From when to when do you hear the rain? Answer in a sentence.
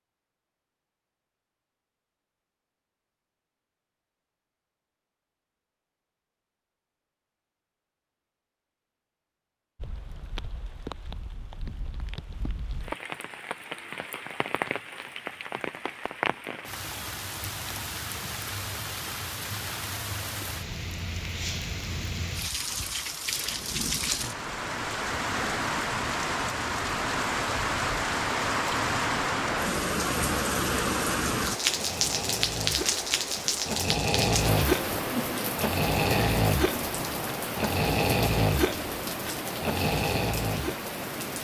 The rain can be heard from 9.8 to 41.3 s.